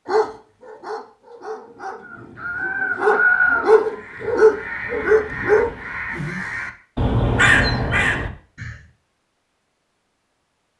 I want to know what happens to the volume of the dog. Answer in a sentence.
The loudness of the dog goes up.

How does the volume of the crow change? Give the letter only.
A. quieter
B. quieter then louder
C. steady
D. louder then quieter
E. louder
B.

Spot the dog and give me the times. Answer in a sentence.
The dog can be heard from 0.1 to 5.8 s.